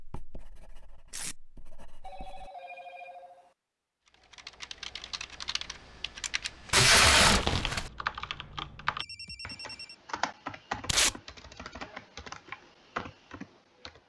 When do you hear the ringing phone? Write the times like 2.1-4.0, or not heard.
2.0-3.5, 8.9-9.9.